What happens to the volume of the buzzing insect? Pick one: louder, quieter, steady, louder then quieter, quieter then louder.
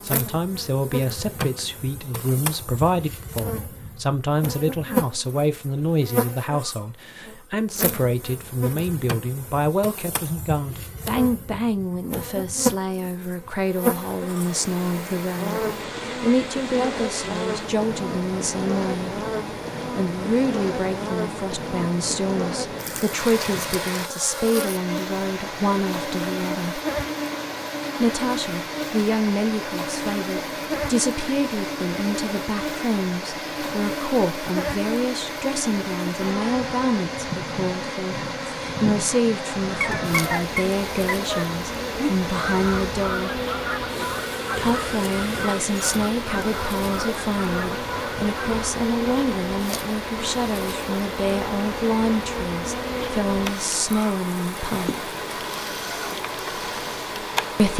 steady.